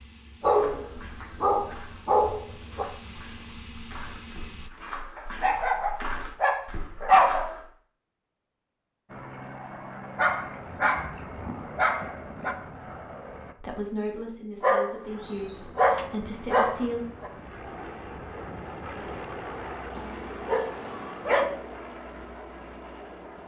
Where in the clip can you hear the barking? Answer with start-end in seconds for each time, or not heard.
0.4-2.9, 5.2-7.5, 10.2-12.6, 14.6-17.3, 19.9-21.5.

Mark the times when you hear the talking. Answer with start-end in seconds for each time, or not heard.
13.6-17.1.